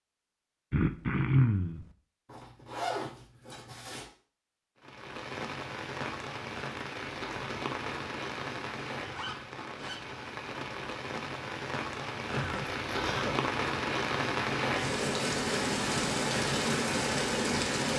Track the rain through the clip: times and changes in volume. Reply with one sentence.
You can hear the rain from 4.8 to 17.9 s, getting louder.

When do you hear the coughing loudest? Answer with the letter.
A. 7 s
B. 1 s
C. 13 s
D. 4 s
B.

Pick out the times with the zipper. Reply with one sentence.
You can hear the zipper from 2.2 to 4.0 s, from 9.1 to 10.0 s and from 12.7 to 13.2 s.